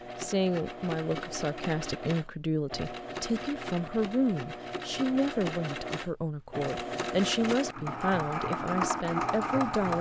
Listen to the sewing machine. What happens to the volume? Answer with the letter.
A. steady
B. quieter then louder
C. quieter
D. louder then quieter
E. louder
E.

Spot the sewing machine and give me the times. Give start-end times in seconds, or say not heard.
0.0-9.9.